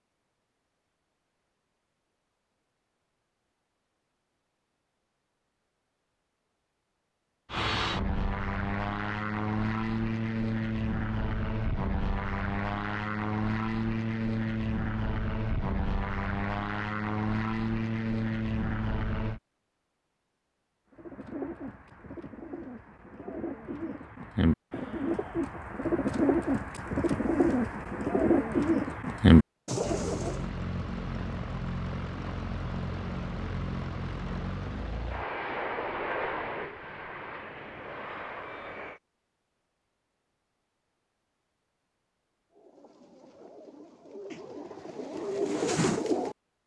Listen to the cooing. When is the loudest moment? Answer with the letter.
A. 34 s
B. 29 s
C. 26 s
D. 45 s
B.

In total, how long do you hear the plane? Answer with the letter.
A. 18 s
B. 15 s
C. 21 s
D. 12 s
C.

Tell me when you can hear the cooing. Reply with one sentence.
The cooing can be heard from 20.9 to 30.4 s and from 42.5 to 46.4 s.